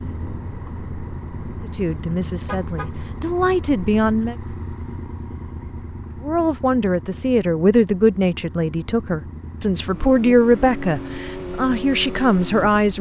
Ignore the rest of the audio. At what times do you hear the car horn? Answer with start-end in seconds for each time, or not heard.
2.5-2.9.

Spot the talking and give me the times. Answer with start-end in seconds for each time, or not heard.
1.6-4.3, 6.2-12.9.